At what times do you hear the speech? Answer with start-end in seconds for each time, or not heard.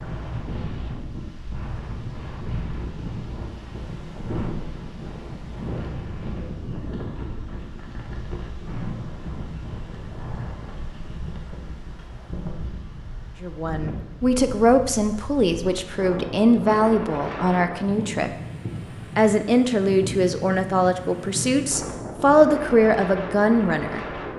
13.4-18.3, 19.1-24.3.